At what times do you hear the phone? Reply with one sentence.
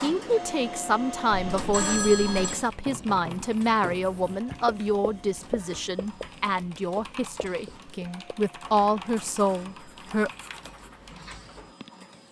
The phone can be heard from 1.3 to 2.6 s.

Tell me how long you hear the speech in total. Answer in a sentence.
You can hear the speech for 10 seconds altogether.